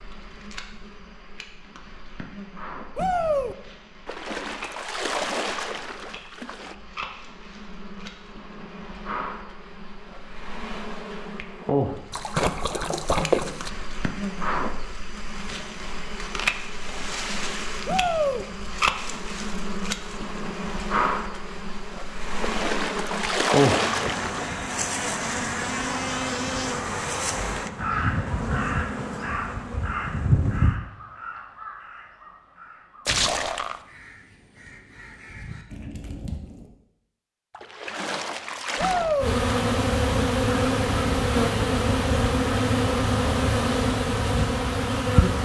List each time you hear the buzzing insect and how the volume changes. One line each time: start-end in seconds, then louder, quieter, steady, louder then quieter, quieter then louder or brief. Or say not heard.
0.0-30.8 louder
39.2-45.4 steady.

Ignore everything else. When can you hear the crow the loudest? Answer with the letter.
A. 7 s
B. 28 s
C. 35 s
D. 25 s
B.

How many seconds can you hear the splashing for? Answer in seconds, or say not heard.
9 s.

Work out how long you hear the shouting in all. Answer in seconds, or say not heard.
2 s.